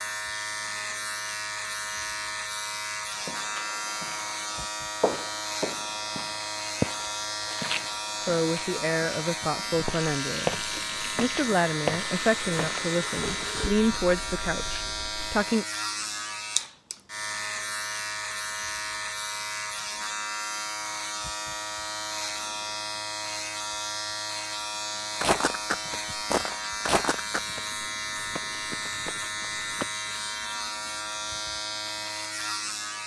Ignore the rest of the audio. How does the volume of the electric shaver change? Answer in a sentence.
The volume of the electric shaver stays about the same.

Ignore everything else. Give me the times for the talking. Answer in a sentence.
You can hear the talking from 8.2 to 15.7 s.